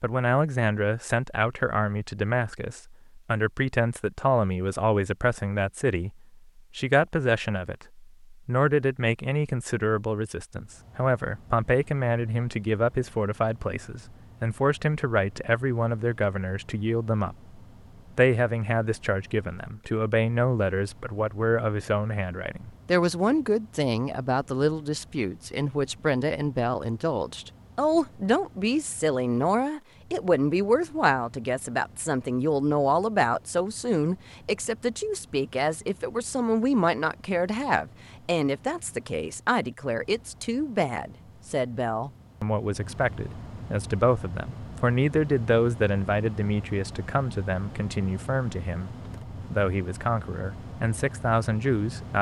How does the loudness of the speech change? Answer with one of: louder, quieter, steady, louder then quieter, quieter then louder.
steady.